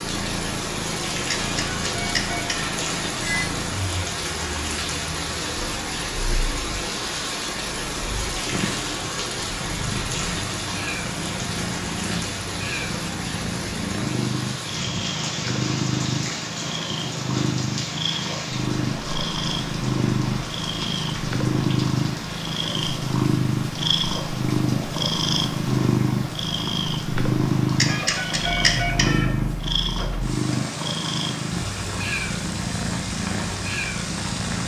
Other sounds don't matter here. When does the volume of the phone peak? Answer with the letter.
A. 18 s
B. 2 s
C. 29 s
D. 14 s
C.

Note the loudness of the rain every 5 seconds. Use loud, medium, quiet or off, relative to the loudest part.
loud, loud, loud, loud, medium, medium, medium.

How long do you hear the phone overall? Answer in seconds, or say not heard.
4 s.